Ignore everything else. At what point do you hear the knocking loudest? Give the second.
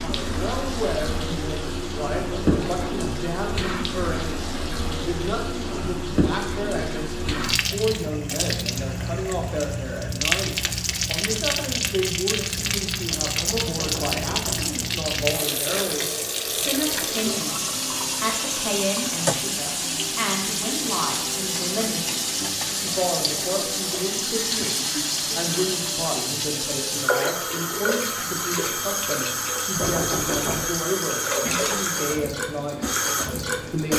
30 s.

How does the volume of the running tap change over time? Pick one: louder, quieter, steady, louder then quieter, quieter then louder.
steady.